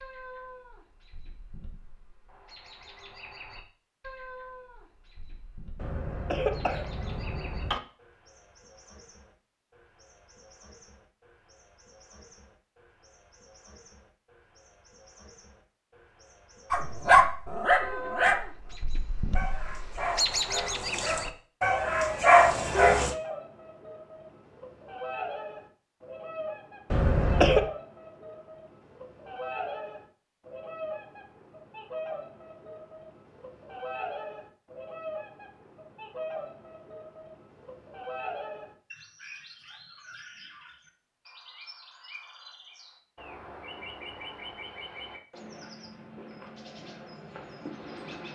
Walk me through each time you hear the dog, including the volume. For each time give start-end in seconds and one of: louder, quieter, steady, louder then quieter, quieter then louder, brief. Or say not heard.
16.7-23.1 quieter then louder.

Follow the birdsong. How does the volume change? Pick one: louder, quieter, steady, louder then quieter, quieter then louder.
louder then quieter.